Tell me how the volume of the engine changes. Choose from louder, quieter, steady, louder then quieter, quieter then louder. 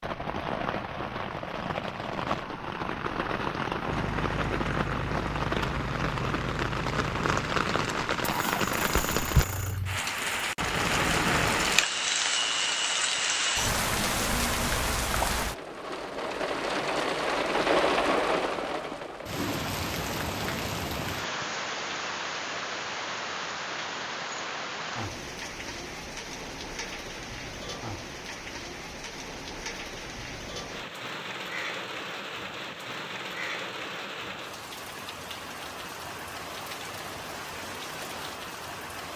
steady.